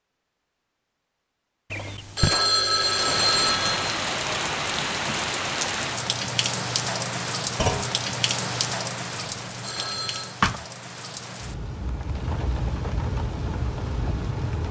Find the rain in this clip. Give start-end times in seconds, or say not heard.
2.6-14.6.